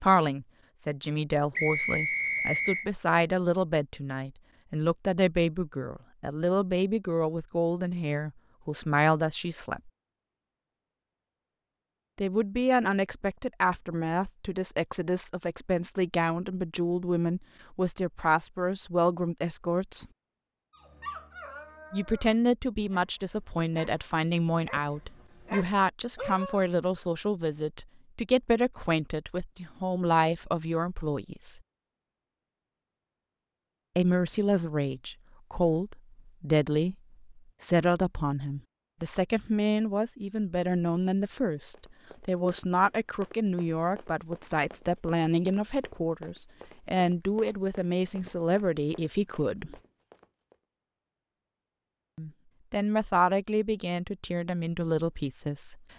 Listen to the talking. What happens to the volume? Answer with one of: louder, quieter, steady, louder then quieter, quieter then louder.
steady.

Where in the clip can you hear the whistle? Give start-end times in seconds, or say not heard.
1.6-2.9.